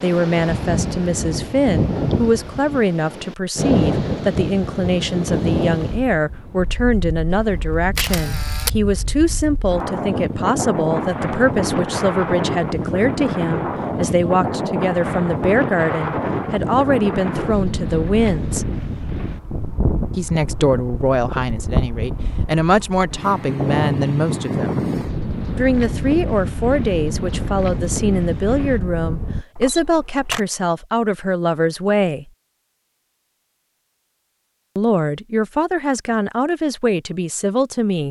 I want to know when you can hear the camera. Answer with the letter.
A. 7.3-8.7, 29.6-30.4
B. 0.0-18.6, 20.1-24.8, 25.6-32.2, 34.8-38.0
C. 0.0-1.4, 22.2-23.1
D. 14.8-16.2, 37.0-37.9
A.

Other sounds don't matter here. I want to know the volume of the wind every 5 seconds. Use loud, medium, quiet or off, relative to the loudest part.
loud, medium, loud, loud, loud, loud, off, off.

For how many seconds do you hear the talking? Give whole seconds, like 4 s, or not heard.
33 s.